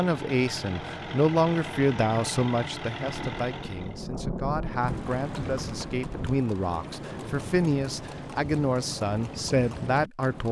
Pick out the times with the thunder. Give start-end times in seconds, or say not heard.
3.0-6.5.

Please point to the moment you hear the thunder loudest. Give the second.
4 s.